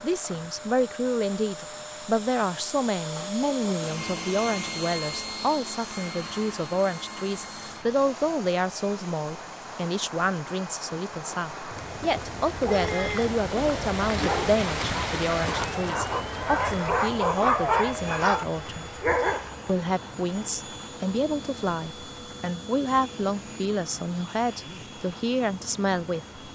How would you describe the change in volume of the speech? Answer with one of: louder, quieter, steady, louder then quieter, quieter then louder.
steady.